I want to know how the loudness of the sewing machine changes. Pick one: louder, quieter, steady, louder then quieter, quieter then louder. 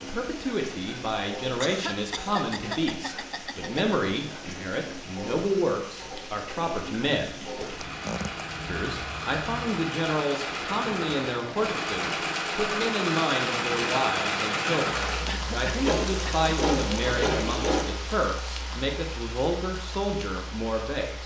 louder.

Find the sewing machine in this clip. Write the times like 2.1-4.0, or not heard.
0.0-17.9.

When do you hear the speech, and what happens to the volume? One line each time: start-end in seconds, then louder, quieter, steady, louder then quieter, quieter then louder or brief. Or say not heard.
0.0-7.3 steady
8.7-21.2 steady.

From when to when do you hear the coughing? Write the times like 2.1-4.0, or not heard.
1.6-3.8, 7.6-8.4, 15.2-16.4.